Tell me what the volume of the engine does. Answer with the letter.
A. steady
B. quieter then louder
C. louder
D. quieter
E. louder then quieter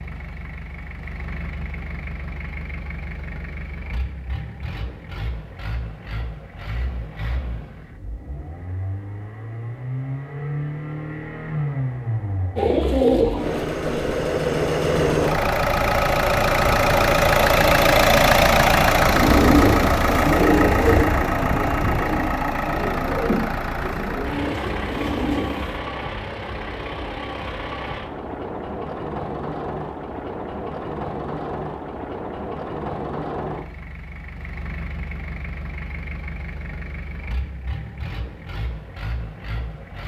E.